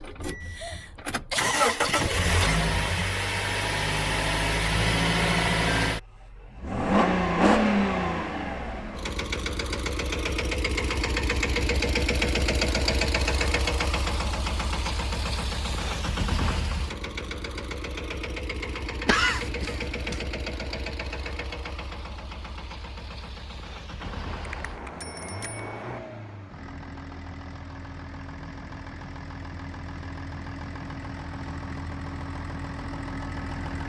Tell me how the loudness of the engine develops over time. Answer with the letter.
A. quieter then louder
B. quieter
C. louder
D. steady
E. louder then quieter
B.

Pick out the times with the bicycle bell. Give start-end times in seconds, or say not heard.
24.0-26.0.